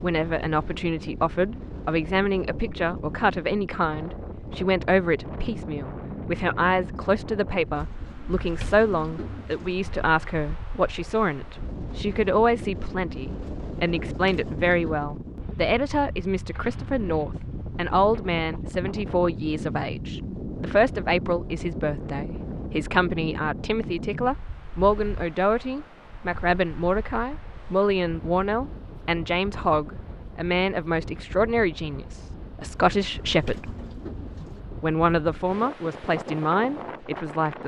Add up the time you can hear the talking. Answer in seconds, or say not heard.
37 s.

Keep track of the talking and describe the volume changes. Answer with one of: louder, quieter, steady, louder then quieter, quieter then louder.
steady.